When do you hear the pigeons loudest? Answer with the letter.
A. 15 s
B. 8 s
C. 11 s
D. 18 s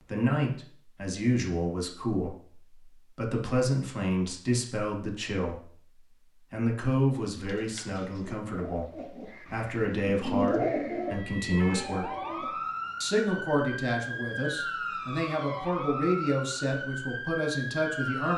C.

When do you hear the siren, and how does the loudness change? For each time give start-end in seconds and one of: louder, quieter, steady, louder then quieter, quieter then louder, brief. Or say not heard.
10.9-18.3 steady.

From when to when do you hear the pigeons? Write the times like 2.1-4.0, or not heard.
7.4-12.6.